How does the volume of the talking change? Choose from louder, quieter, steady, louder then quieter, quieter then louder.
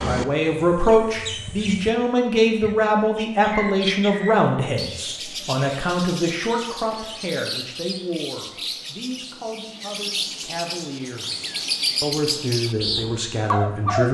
quieter then louder.